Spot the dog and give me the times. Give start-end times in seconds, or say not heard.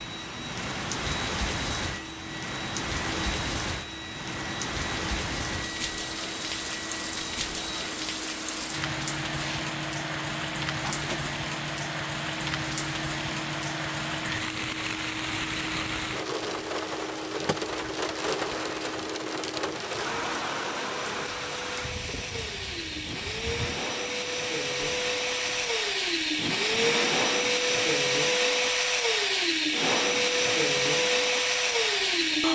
not heard.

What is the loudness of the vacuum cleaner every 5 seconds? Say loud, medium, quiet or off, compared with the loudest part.
quiet, quiet, quiet, quiet, medium, loud, loud.